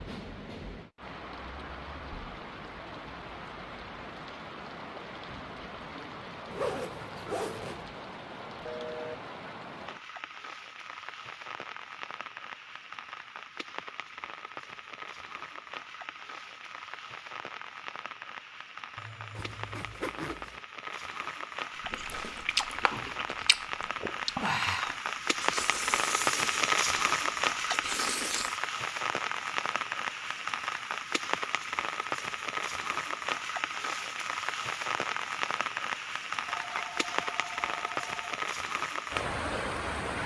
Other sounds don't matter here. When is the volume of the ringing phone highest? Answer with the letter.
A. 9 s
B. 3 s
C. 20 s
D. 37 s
A.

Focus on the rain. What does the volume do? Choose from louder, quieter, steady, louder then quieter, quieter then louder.
louder.